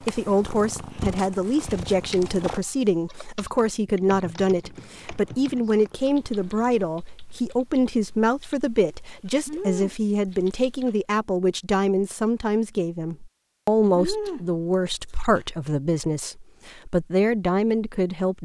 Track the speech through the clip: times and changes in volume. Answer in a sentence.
The speech can be heard from 0.0 to 18.4 s, at a steady volume.